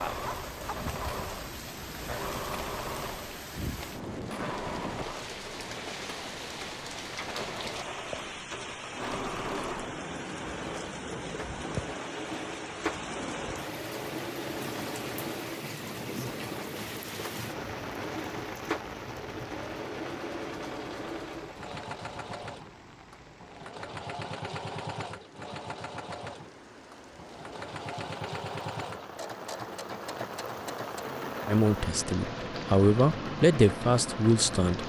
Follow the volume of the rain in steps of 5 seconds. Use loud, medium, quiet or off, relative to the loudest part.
loud, loud, loud, loud, medium, medium, loud.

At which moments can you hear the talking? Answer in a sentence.
You can hear the talking from 31.4 to 34.8 s.